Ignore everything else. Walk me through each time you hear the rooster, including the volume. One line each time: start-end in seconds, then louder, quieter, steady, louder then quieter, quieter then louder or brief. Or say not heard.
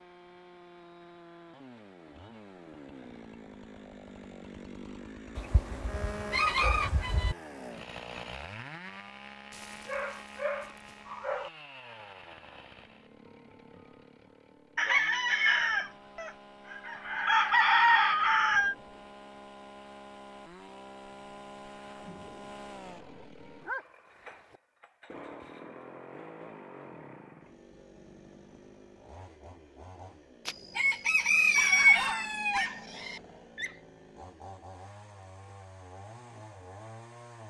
5.3-7.3 brief
14.8-18.8 quieter then louder
30.4-33.2 brief.